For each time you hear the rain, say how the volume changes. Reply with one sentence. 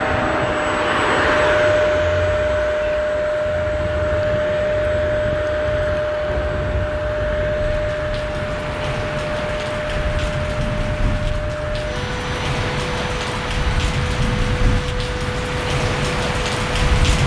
You can hear the rain from 0.0 to 17.2 s, getting louder.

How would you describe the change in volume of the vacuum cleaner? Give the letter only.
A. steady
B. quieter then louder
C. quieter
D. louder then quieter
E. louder
C.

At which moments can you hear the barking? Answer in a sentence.
The barking can't be heard in this clip.